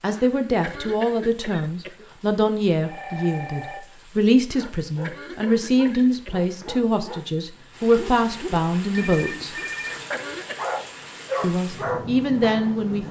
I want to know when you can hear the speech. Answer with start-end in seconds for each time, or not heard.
0.0-9.6, 11.4-13.0.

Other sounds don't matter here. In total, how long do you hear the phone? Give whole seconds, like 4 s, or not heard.
2 s.